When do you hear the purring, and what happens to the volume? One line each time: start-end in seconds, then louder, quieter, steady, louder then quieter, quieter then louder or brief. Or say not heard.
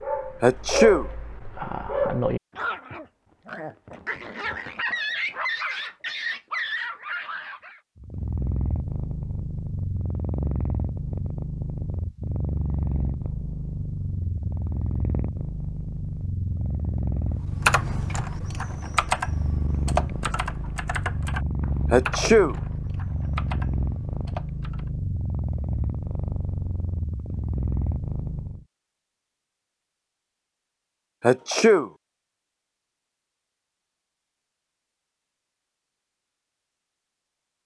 8.0-28.6 steady.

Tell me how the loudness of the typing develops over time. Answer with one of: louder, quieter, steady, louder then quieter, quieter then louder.
quieter.